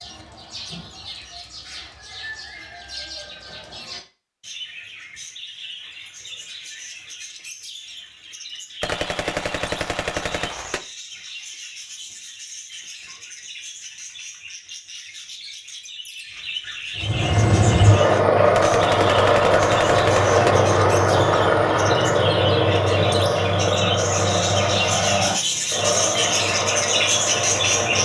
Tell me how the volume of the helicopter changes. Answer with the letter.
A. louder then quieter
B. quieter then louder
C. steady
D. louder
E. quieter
E.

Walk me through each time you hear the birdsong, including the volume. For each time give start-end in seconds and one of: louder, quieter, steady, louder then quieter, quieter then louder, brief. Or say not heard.
0.0-28.0 louder.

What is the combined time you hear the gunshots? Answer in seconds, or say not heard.
4 s.